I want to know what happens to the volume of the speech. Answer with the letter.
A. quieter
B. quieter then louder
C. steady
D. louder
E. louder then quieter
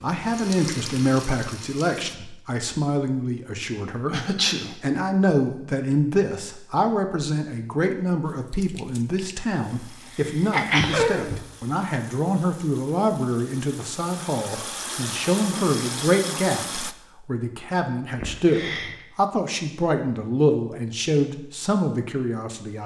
C.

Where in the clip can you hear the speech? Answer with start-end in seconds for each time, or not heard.
0.0-22.8.